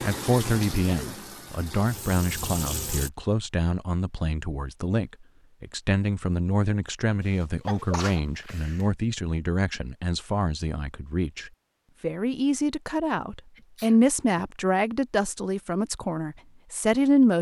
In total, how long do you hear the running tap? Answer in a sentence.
The running tap can be heard for 3 seconds in total.